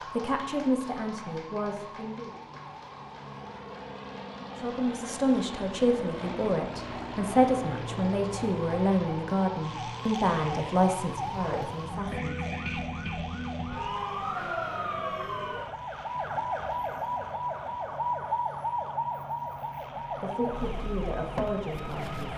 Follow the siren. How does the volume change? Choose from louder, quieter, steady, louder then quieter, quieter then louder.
louder.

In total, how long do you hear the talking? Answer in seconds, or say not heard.
12 s.